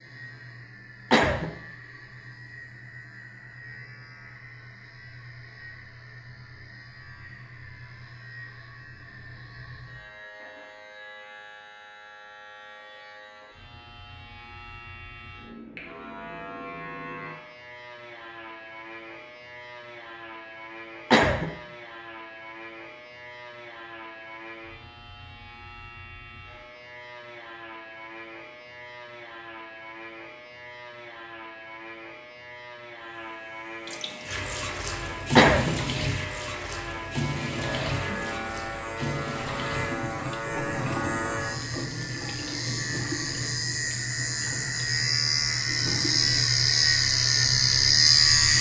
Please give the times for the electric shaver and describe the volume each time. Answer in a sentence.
The electric shaver can be heard from 0.0 to 48.5 s, getting louder.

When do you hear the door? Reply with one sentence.
The door can't be heard in this clip.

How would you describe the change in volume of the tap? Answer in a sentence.
The loudness of the tap goes down.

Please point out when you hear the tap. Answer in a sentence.
The tap can be heard from 33.9 to 48.5 s.